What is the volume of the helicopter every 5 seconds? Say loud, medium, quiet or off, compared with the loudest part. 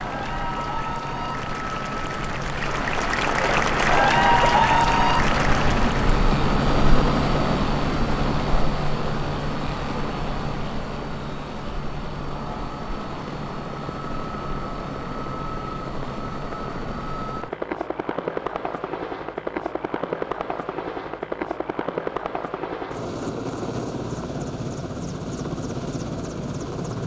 medium, loud, medium, medium, medium, medium.